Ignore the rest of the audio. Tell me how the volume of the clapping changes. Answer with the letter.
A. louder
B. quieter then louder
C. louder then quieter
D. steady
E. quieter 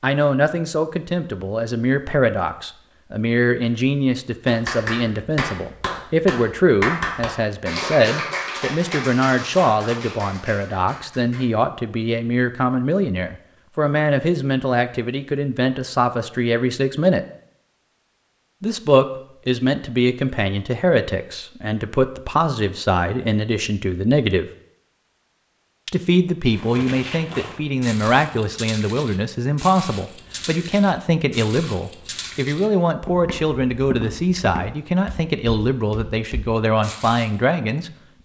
E.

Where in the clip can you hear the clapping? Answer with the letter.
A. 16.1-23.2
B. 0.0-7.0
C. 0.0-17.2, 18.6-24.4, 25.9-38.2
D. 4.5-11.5
D.